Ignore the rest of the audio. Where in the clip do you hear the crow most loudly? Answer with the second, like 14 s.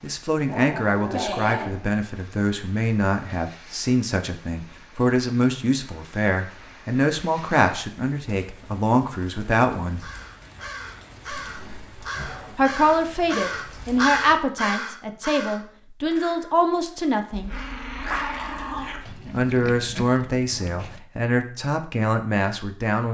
14 s.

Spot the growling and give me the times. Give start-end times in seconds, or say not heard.
0.1-1.9, 11.3-12.7, 17.3-19.1.